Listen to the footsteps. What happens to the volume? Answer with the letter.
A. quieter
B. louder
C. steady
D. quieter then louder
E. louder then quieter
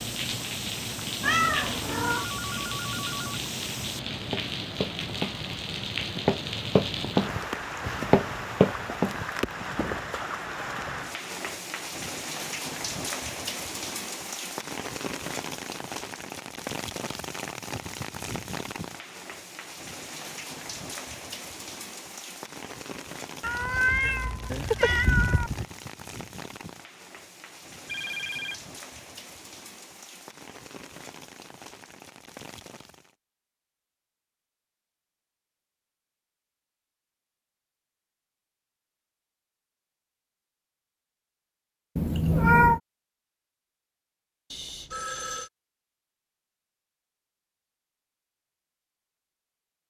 B.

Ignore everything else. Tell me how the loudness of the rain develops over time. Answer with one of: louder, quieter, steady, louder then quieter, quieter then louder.
quieter.